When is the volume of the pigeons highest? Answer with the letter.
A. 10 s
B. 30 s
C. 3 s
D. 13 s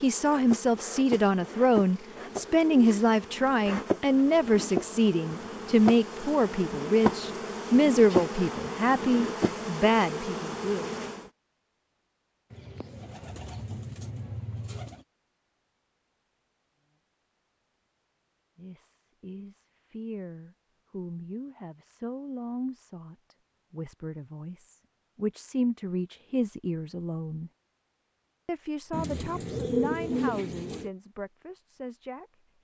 B.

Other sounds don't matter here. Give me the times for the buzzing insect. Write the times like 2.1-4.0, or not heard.
0.0-11.2.